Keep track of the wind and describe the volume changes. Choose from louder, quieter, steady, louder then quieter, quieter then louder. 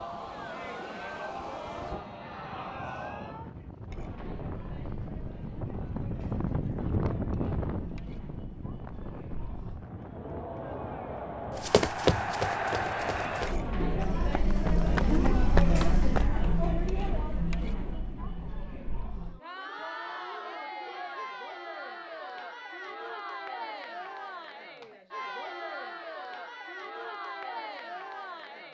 louder then quieter.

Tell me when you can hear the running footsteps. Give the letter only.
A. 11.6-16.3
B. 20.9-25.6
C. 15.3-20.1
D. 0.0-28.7
A.